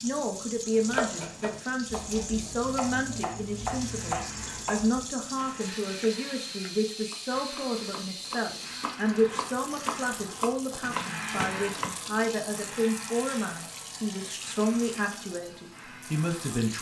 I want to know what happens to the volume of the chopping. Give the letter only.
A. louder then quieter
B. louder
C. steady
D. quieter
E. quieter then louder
E.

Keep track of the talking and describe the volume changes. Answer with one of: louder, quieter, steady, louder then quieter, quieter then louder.
steady.